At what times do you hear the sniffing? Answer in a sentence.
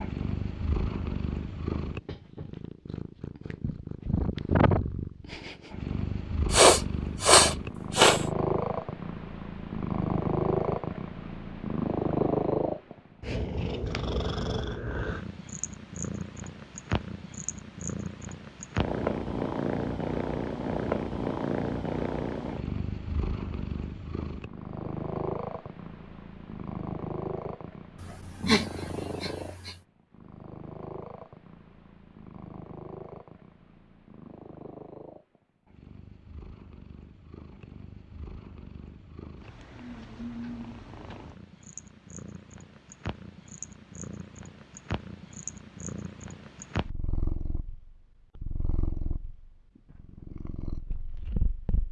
You can hear the sniffing from 6.5 to 8.2 s and from 27.9 to 29.8 s.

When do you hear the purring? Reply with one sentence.
You can hear the purring from 0.0 to 51.8 s.